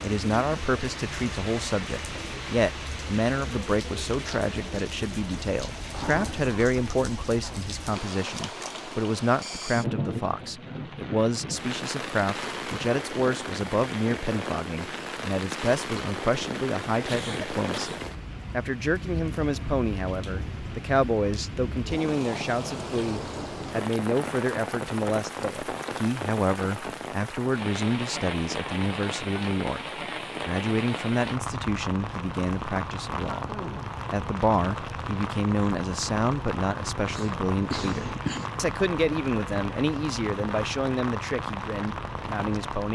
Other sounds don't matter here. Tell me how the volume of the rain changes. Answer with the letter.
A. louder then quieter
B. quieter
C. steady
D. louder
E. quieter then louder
C.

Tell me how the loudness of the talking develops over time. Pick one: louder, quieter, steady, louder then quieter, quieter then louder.
steady.